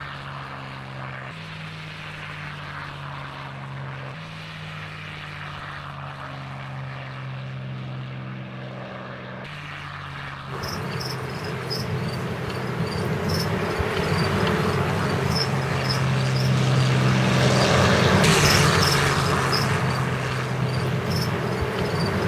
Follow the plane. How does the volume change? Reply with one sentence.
The loudness of the plane goes up.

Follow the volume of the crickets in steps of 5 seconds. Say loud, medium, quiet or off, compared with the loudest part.
off, off, loud, loud, loud.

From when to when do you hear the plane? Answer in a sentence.
The plane can be heard from 0.0 to 22.1 s.